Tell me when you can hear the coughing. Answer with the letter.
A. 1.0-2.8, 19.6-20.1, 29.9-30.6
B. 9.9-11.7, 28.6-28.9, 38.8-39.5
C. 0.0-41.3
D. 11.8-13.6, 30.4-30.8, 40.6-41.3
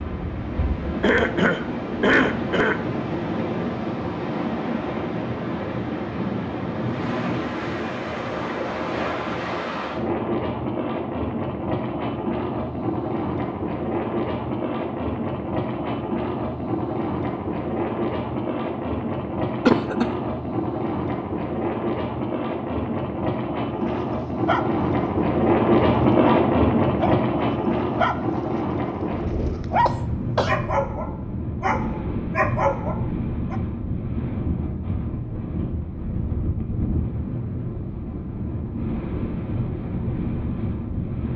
A.